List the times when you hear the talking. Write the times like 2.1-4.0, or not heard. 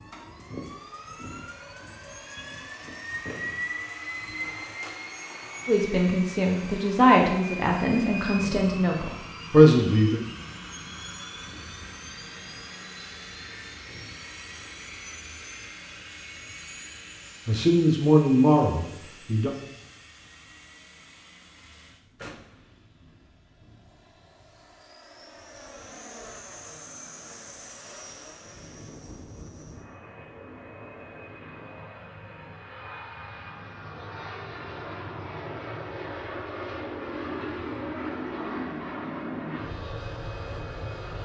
5.7-10.2, 17.4-19.5.